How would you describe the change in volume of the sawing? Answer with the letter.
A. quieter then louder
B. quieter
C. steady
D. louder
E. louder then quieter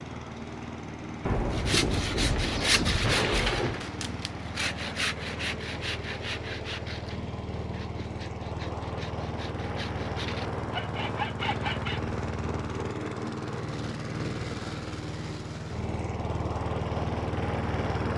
A.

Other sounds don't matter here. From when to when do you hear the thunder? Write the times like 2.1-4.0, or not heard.
1.2-3.9.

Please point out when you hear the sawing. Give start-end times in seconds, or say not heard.
1.5-12.1.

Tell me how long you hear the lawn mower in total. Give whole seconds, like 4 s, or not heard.
18 s.